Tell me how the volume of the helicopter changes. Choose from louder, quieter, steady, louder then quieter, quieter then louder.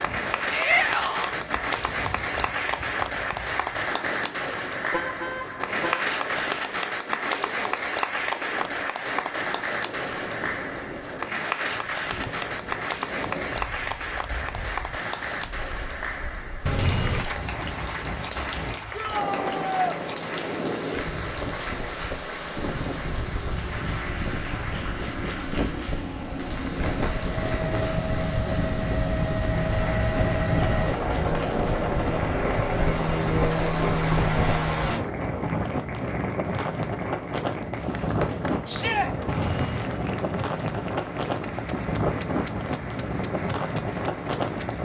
louder.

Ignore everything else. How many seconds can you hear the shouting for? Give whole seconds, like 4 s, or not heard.
2 s.